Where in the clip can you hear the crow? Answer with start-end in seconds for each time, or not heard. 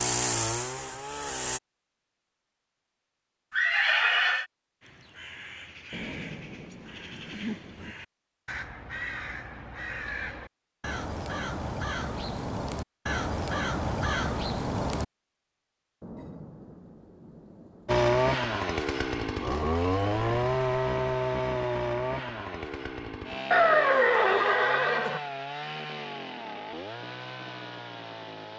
4.8-15.1.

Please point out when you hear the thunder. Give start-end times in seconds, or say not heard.
5.9-8.0, 16.0-18.1.